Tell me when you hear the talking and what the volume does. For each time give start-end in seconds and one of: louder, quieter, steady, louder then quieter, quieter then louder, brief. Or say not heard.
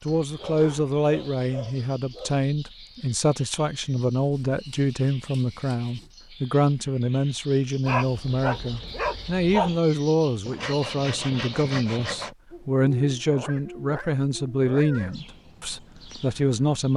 0.0-16.9 steady.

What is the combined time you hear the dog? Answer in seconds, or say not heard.
6 s.